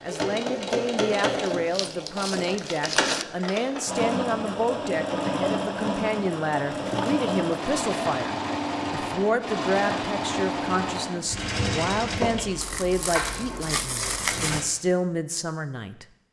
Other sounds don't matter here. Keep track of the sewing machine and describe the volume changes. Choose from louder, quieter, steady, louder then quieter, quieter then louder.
steady.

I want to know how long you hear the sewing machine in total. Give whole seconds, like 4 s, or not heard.
15 s.